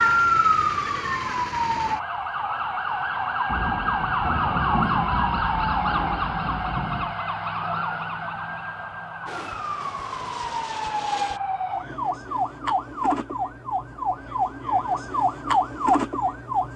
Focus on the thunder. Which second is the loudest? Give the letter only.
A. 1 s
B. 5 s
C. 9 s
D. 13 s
B.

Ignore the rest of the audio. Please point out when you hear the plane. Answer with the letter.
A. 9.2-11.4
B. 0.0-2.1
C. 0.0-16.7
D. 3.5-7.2
A.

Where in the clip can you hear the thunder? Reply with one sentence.
You can hear the thunder from 3.5 to 7.2 s.